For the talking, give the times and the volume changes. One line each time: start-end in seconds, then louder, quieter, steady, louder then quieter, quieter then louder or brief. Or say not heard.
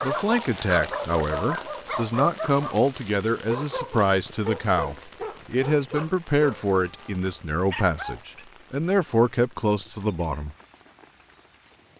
0.0-10.6 steady.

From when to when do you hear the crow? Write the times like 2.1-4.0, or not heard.
not heard.